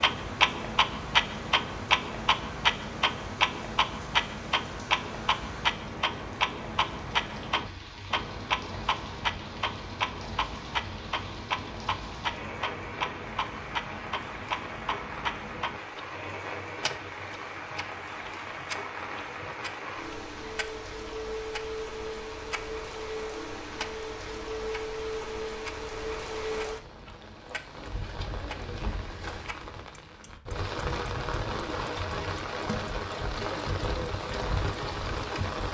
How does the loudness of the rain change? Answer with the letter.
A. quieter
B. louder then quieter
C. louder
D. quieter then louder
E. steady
C.